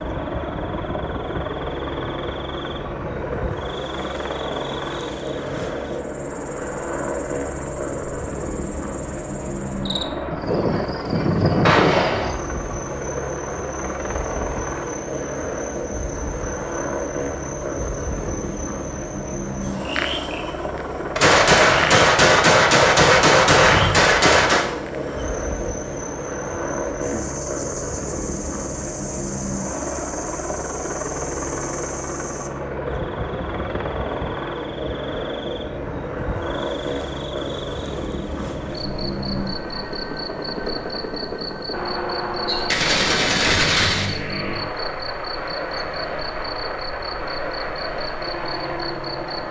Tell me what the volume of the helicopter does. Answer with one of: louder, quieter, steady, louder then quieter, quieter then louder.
steady.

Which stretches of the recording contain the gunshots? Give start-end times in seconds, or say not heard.
10.3-12.3, 21.1-24.6, 42.5-44.1.